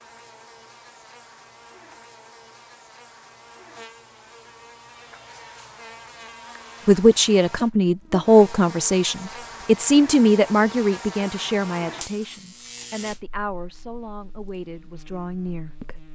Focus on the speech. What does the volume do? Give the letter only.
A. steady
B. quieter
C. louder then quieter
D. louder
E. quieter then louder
B.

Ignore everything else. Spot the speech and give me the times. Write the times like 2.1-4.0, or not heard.
6.8-16.0.